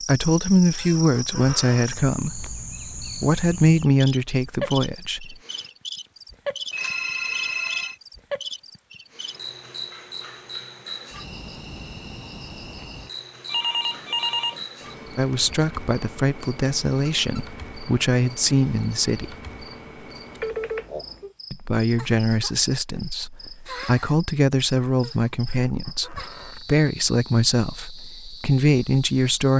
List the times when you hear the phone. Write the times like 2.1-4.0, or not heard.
6.7-8.0, 13.4-14.7, 20.4-21.3.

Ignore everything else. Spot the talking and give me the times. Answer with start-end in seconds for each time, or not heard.
0.0-5.3, 15.2-19.2, 21.5-29.5.